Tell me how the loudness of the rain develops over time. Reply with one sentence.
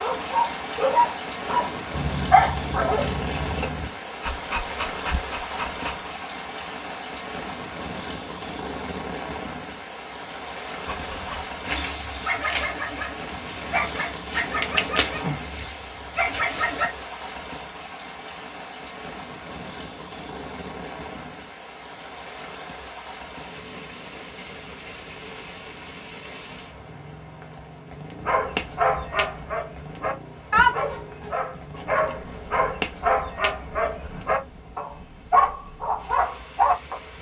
The volume of the rain goes down.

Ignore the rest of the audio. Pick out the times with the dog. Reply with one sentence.
The dog can be heard from 0.0 to 6.1 s, from 10.8 to 16.9 s and from 28.2 to 37.1 s.